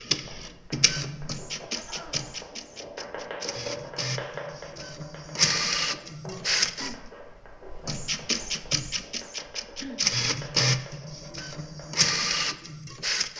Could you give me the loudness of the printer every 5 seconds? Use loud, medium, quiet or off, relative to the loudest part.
medium, loud, loud.